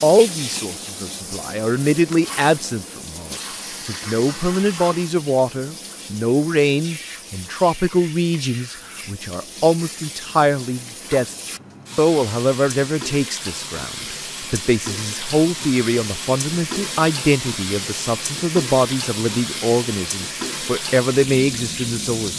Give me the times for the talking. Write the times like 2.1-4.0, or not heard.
0.0-11.3, 11.9-22.3.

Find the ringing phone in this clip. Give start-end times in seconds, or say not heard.
not heard.